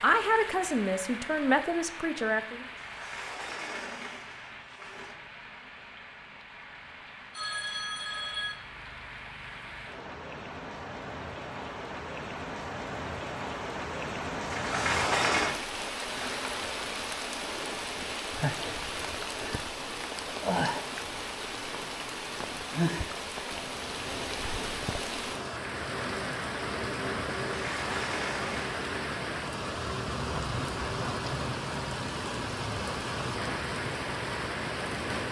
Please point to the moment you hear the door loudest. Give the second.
15 s.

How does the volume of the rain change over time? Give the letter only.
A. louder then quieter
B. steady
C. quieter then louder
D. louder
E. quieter
D.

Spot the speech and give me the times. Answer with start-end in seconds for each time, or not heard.
0.0-2.6.